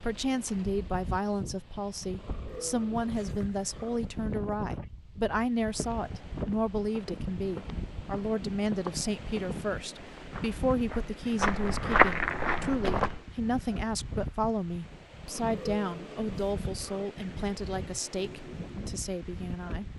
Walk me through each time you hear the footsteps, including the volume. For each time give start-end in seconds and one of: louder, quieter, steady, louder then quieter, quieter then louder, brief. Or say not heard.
5.6-13.2 louder.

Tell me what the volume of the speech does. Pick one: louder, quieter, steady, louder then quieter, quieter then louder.
steady.